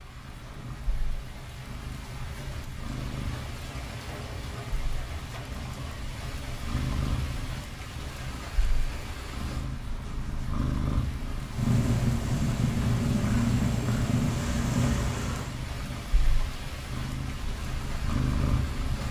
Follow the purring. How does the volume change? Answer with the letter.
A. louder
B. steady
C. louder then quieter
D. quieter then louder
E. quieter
C.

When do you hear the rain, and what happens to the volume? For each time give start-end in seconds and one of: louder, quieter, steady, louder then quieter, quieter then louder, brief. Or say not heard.
0.0-19.0 steady.